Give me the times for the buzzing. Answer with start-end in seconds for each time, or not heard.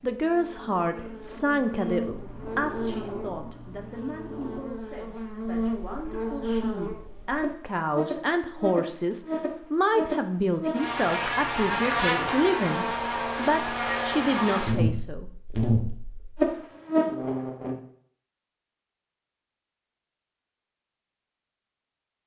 0.1-17.8.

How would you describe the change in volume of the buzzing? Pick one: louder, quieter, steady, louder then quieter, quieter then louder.
louder.